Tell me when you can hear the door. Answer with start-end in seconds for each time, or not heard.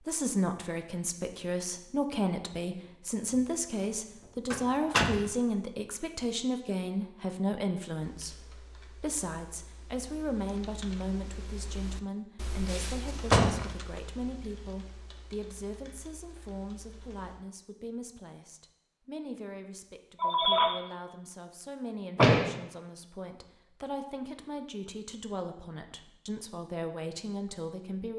4.5-5.2, 12.7-13.7, 22.1-22.6.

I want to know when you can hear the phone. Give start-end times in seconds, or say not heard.
20.1-20.8.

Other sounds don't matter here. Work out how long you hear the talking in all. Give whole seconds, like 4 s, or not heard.
28 s.